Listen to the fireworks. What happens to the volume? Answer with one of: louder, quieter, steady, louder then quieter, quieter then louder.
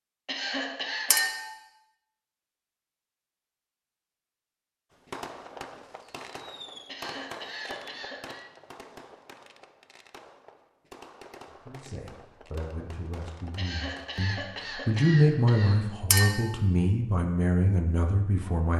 quieter.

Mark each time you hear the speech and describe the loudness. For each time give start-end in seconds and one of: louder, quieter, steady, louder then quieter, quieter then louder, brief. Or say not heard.
11.7-18.7 louder then quieter.